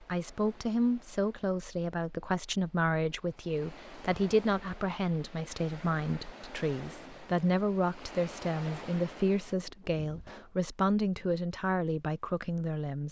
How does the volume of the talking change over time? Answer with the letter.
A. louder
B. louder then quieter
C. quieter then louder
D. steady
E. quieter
D.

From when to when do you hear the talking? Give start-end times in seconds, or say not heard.
0.0-13.0.